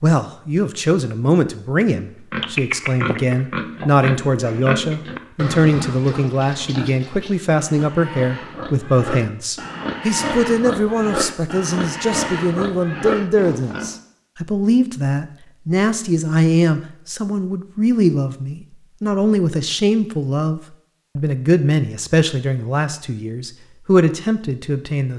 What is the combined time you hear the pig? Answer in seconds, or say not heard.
12 s.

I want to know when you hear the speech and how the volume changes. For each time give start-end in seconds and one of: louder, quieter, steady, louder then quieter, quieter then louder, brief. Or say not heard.
0.0-25.1 steady.